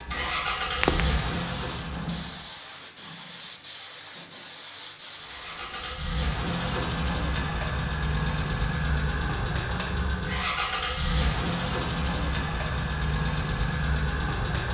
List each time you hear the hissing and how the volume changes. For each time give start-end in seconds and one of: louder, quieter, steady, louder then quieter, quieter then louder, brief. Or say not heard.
0.0-6.0 quieter.